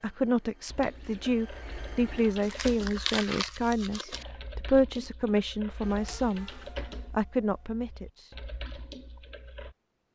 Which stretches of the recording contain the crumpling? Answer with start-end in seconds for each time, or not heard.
2.4-4.2.